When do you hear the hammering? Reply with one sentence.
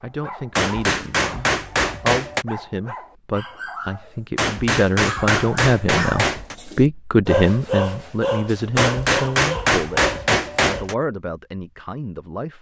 The hammering can be heard from 0.6 to 2.5 s, from 4.3 to 6.5 s and from 8.8 to 10.9 s.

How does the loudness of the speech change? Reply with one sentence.
The loudness of the speech goes up, then down.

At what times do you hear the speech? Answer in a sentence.
The speech can be heard from 0.0 to 12.5 s.